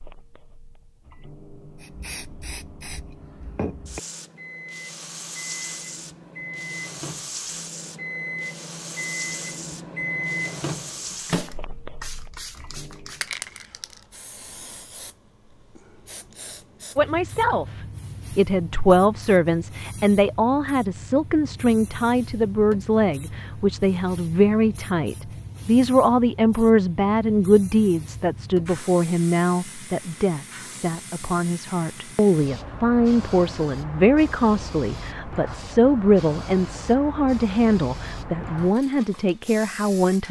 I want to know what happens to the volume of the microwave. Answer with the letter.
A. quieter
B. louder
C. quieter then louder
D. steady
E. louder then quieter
B.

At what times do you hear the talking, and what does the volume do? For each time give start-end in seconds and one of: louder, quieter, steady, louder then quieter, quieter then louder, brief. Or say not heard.
16.9-17.6 brief
18.4-40.2 steady.